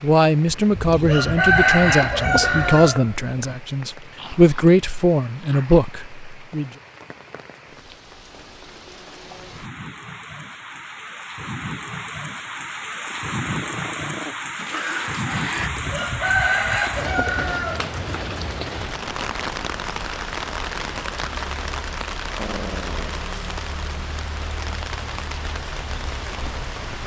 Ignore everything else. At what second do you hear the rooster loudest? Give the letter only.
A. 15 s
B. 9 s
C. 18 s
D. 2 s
D.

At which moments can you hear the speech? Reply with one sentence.
You can hear the speech from 0.0 to 6.7 s.